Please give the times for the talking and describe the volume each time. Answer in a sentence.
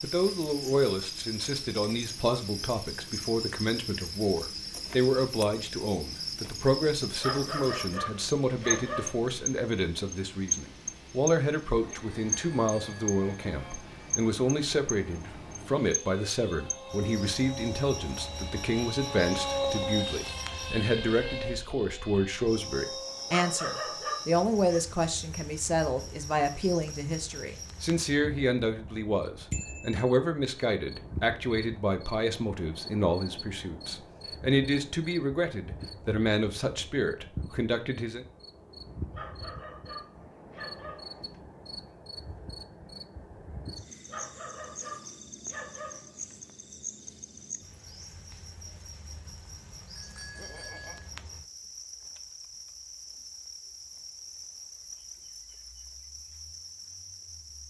You can hear the talking from 0.0 to 38.2 s, at a steady volume.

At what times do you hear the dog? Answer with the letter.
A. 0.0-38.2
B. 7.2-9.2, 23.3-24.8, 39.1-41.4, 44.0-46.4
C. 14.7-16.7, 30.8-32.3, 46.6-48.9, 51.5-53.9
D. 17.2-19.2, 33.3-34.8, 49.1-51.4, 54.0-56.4
B.